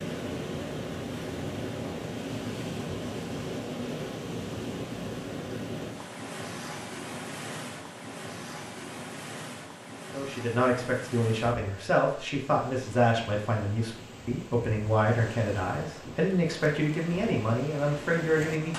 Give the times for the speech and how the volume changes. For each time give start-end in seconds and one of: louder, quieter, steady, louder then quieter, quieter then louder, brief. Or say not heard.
10.1-18.7 steady.